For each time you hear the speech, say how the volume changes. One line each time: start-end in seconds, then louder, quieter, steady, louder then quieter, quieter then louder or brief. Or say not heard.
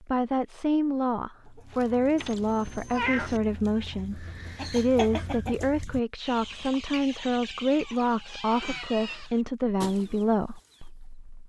0.0-11.4 steady.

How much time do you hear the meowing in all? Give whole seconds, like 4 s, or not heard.
3 s.